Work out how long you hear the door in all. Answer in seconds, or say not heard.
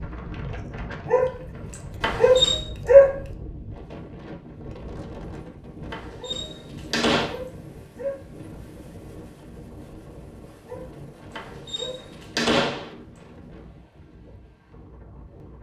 4 s.